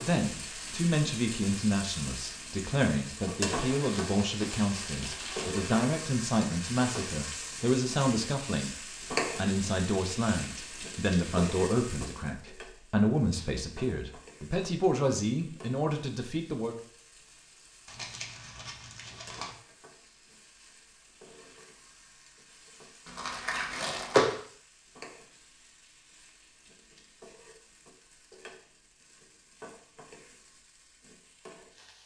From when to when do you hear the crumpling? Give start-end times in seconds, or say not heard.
3.7-5.5, 17.9-19.6, 23.1-24.4.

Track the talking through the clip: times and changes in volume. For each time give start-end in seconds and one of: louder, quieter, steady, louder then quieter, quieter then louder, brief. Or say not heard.
0.0-16.8 steady.